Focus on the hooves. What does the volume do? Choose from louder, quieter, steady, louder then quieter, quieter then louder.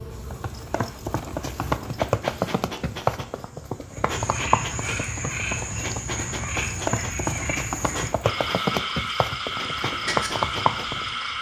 quieter then louder.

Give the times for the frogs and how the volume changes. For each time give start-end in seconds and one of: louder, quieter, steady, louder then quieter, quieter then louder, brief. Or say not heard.
3.9-11.3 steady.